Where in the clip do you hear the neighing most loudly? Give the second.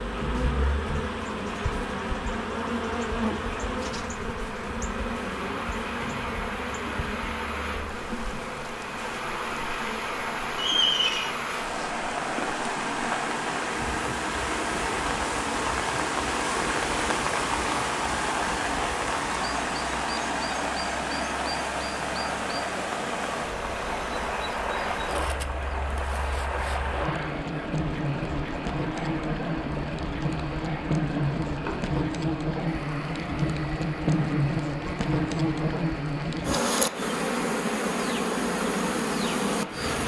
11 s.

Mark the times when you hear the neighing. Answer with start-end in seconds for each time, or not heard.
10.6-11.3, 31.4-31.9.